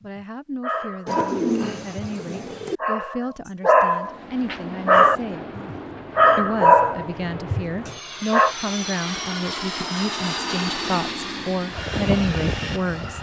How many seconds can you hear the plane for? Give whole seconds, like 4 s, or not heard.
9 s.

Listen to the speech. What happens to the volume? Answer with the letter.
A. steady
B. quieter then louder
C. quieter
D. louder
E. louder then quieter
D.